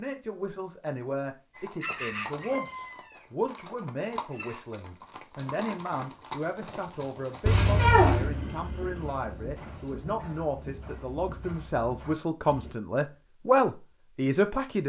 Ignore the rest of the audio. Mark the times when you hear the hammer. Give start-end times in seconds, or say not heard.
not heard.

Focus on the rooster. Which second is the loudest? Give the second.
2 s.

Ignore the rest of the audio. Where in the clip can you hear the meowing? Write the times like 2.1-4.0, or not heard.
7.5-8.3.